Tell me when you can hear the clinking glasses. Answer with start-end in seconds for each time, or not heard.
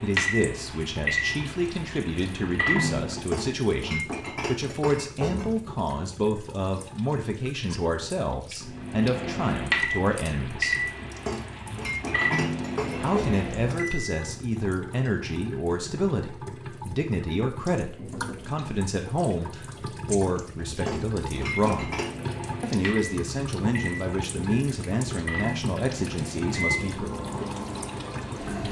3.1-5.7, 11.1-13.4, 20.6-22.1.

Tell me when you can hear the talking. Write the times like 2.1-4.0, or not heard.
0.0-10.8, 13.0-21.9, 22.6-27.1.